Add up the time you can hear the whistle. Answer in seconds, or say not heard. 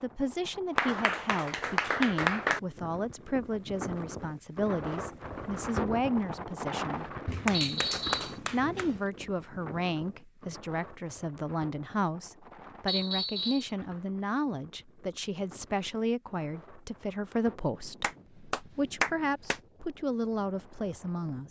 2 s.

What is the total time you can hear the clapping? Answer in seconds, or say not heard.
5 s.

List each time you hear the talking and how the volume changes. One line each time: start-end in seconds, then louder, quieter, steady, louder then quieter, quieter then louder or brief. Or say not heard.
0.0-7.8 steady
8.5-21.4 steady.